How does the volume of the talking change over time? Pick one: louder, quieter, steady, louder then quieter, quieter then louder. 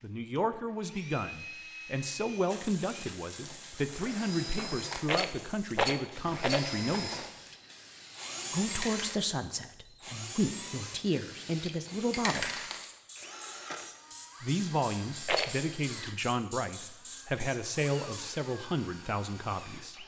steady.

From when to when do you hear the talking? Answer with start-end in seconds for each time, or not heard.
0.0-7.2, 8.5-12.7, 14.4-20.0.